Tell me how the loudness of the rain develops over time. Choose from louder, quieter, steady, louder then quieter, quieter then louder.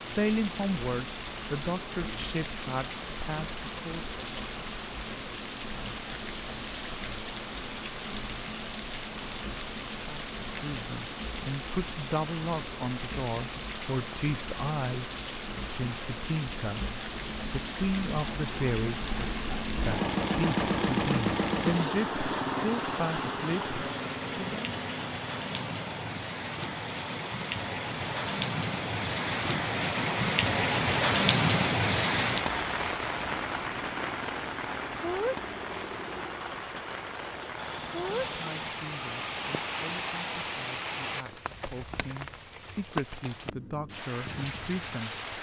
louder then quieter.